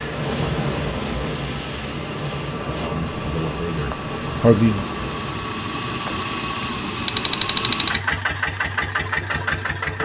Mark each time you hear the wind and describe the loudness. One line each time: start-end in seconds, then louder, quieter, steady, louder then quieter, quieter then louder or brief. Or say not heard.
0.0-5.4 quieter.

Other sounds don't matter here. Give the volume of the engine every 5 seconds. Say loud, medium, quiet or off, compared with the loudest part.
medium, loud.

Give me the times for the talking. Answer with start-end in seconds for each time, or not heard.
2.8-4.8.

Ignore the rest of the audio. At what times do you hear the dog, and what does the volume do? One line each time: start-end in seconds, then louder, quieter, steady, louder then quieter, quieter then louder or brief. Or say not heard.
not heard.